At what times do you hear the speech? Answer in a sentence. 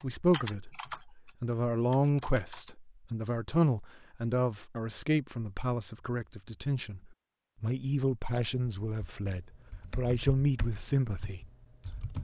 You can hear the speech from 0.0 to 11.4 s.